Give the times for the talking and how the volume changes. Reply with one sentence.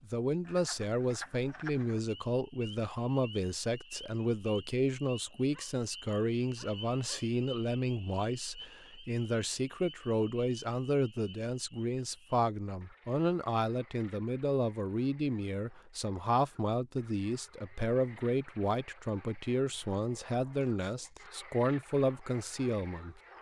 You can hear the talking from 0.1 to 23.3 s, at a steady volume.